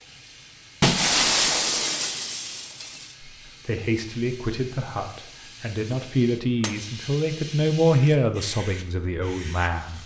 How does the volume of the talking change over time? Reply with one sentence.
The volume of the talking goes up, then down.